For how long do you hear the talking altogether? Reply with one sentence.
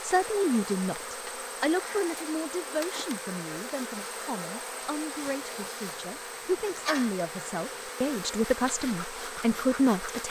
You can hear the talking for 10 seconds altogether.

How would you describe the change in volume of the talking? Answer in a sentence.
The loudness of the talking goes down, then up.